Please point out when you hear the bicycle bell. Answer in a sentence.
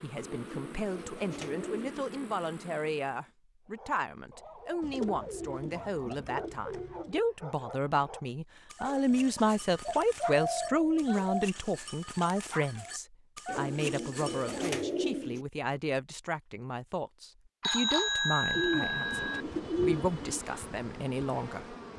You can hear the bicycle bell from 17.6 to 19.4 s.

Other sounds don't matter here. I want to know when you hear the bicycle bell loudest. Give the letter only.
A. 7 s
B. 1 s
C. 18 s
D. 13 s
C.